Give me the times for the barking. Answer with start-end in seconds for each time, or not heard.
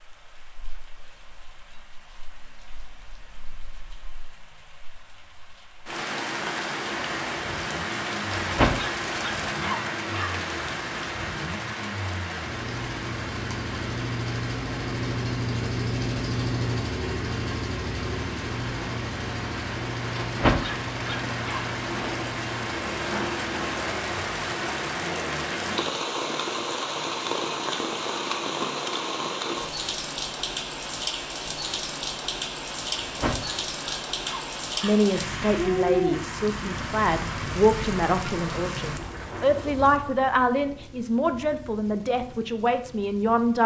8.3-10.3, 20.2-21.6, 32.9-35.0.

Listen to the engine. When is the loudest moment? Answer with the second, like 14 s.
16 s.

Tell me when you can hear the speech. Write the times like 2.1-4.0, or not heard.
34.8-43.6.